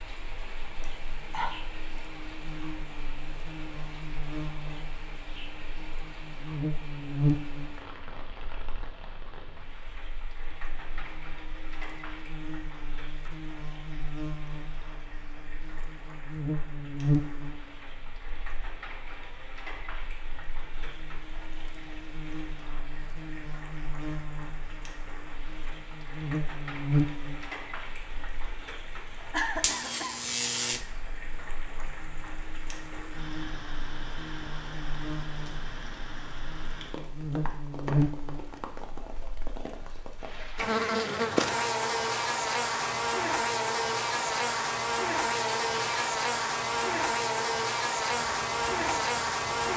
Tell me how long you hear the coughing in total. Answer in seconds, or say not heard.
3 s.